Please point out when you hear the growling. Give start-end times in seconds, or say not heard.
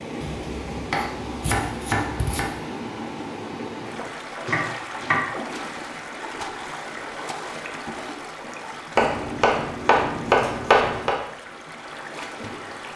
not heard.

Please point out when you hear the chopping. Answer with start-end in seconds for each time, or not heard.
0.2-2.5, 4.5-5.2, 8.9-11.2.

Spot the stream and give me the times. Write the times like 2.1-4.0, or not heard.
0.0-12.9.